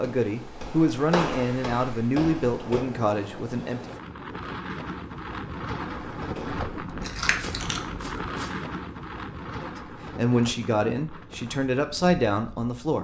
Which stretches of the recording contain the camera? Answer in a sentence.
You can hear the camera from 7.0 to 8.1 s.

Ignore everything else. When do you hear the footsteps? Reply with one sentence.
The footsteps can be heard from 0.0 to 2.9 s and from 5.9 to 8.6 s.